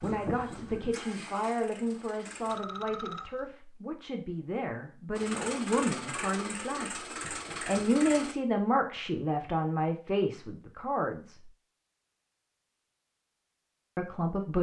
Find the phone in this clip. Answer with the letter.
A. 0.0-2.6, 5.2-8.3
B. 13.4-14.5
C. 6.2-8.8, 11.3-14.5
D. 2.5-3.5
D.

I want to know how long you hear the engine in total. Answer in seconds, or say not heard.
6 s.